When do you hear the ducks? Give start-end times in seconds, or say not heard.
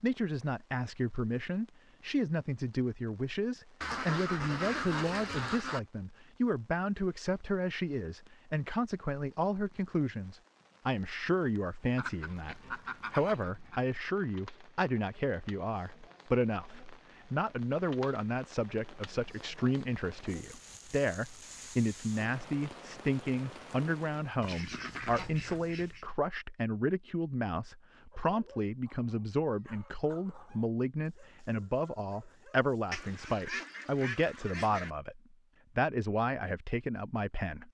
3.8-5.8, 11.9-13.8, 24.4-26.1, 32.9-34.9.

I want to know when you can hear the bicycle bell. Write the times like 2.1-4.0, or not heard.
not heard.